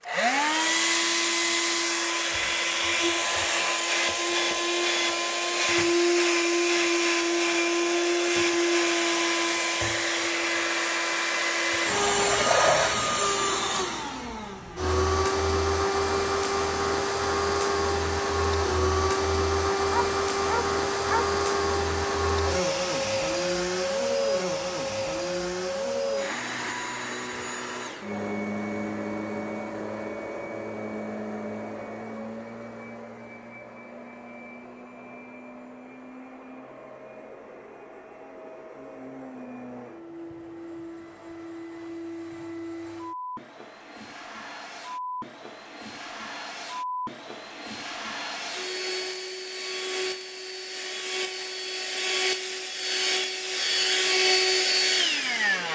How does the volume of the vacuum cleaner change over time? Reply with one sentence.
The loudness of the vacuum cleaner goes down, then up.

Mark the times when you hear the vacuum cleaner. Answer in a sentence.
You can hear the vacuum cleaner from 0.0 to 55.7 s.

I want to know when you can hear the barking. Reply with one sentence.
The barking can be heard from 19.9 to 21.2 s.